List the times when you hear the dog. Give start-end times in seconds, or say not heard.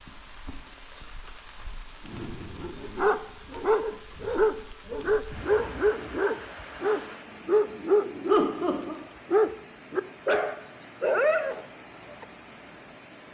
2.0-12.2.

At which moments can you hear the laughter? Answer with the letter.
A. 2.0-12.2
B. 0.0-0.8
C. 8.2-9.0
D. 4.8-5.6
C.